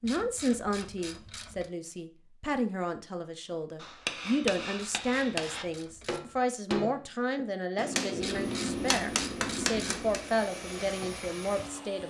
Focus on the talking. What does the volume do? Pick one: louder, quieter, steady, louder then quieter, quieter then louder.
steady.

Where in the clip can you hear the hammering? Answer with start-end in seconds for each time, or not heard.
3.8-10.3.